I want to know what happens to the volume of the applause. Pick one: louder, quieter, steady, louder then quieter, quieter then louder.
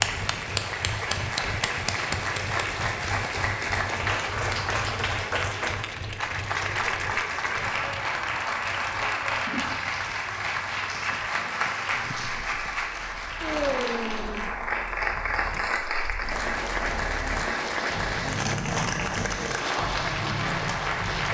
steady.